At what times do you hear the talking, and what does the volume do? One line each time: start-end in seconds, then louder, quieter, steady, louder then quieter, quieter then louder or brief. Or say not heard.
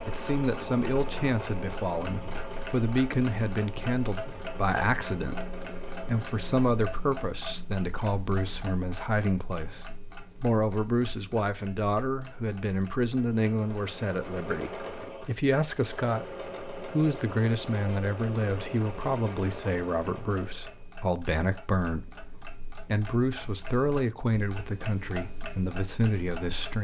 0.1-26.8 steady.